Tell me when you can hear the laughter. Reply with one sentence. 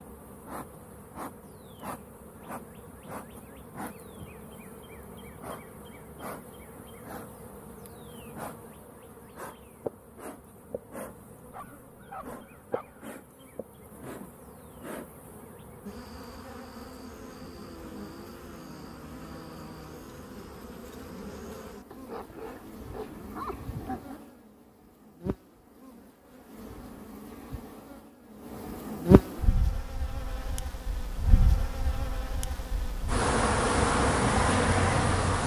You can't hear the laughter here.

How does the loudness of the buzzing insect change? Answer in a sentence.
The loudness of the buzzing insect goes up.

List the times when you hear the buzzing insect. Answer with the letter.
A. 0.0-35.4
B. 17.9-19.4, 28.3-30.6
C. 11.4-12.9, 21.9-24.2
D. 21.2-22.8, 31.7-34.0
A.